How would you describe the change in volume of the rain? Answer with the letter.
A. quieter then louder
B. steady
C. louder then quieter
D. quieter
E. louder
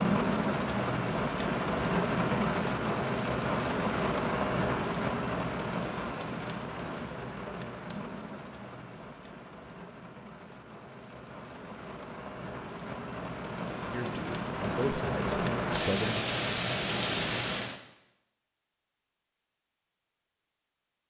A.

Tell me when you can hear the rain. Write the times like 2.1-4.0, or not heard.
0.0-17.8.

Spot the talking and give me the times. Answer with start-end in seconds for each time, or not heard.
13.8-16.2.